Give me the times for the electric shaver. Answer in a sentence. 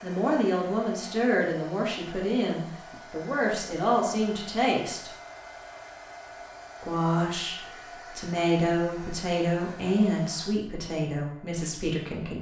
You can't hear the electric shaver here.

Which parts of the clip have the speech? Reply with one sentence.
The speech can be heard from 0.0 to 5.1 s and from 6.8 to 12.3 s.